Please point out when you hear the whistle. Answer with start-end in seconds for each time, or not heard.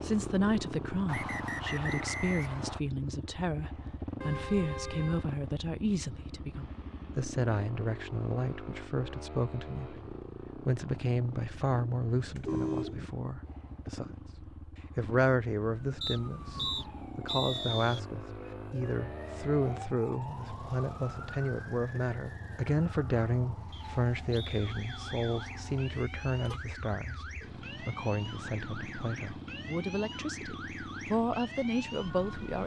1.1-2.8, 16.0-18.0, 23.7-25.6.